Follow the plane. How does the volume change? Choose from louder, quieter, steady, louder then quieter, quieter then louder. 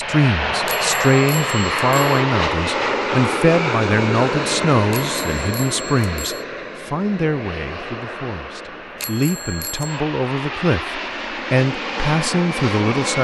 quieter then louder.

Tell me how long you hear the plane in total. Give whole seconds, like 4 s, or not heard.
13 s.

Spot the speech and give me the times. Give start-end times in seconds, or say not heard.
0.0-13.1.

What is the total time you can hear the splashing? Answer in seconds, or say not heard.
not heard.